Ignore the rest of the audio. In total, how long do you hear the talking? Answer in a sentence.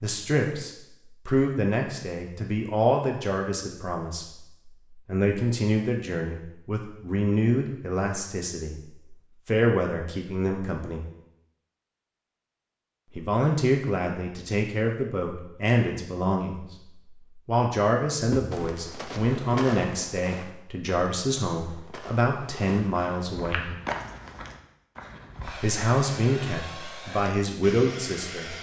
The talking can be heard for 25 seconds in total.